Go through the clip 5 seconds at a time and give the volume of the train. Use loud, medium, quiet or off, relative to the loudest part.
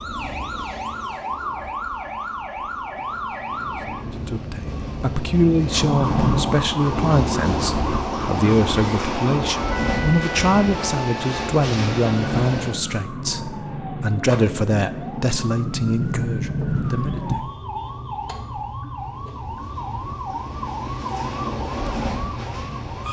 quiet, loud, loud, quiet, medium.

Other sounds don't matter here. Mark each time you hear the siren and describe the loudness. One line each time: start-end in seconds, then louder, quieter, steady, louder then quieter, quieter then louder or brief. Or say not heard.
0.0-23.0 steady.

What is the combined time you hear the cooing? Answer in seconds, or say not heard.
not heard.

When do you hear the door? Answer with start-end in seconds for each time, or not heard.
6.0-6.6, 15.7-17.5.